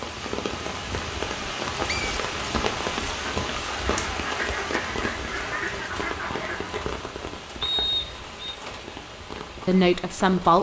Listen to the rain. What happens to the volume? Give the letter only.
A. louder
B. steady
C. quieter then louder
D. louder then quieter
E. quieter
E.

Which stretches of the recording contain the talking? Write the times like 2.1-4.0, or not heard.
9.7-10.5.